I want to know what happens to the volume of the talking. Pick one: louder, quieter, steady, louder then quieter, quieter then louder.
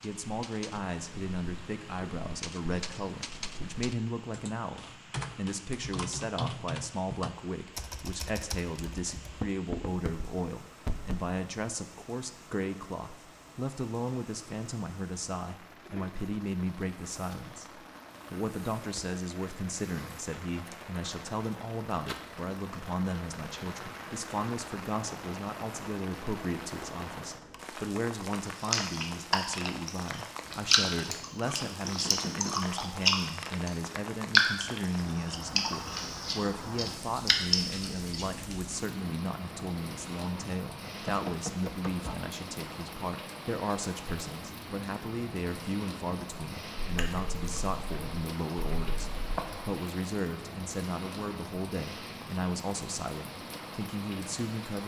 steady.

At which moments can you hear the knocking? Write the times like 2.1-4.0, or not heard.
9.3-11.2, 31.6-32.6, 41.0-42.1.